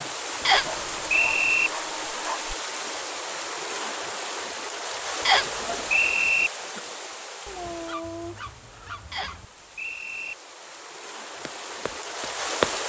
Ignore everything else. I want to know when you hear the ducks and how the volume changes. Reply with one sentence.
The ducks can't be heard in this clip.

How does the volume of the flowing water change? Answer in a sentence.
The volume of the flowing water goes down, then up.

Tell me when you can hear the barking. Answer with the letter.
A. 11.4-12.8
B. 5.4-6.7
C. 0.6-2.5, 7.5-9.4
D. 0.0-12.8
C.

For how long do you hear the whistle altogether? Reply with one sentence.
You can hear the whistle for 4 seconds altogether.